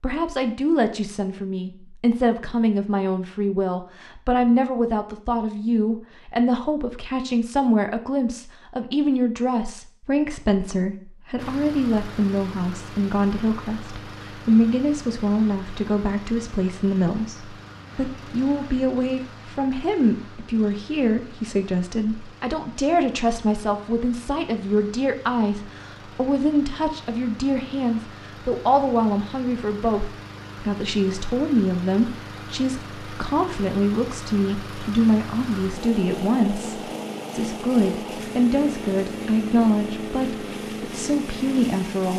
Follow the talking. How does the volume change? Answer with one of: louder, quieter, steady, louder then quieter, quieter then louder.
steady.